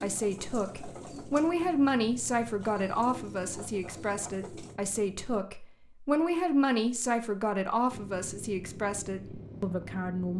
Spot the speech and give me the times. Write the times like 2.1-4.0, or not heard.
0.0-10.3.